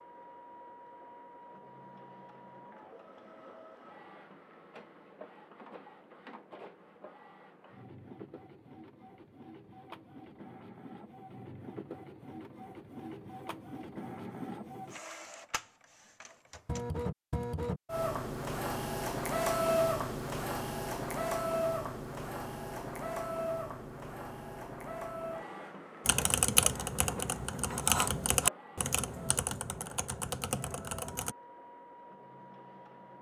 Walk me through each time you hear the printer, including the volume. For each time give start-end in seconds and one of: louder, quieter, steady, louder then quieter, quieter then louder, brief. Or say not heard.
0.0-33.1 louder then quieter.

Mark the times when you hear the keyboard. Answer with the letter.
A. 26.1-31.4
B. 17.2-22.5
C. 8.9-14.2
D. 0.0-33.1
A.